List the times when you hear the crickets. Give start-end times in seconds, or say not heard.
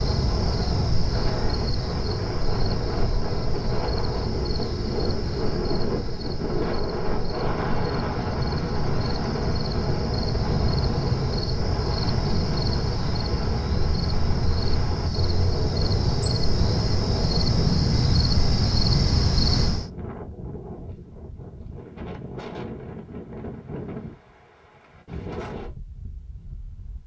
0.0-19.9.